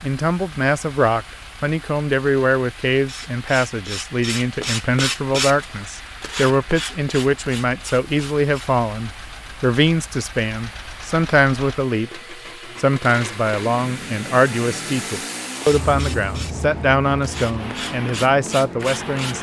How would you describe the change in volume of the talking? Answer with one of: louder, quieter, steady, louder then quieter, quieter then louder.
steady.